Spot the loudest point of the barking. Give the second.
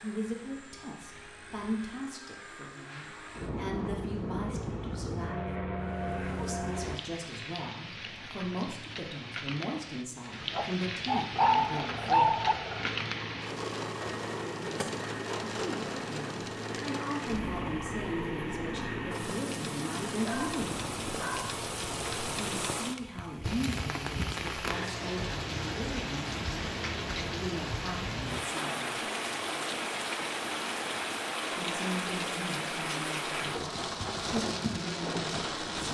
12 s.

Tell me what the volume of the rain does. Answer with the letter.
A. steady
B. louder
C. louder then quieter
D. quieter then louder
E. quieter
B.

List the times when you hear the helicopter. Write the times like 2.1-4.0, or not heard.
0.0-7.0, 11.3-22.6.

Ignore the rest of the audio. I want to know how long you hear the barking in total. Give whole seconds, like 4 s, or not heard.
3 s.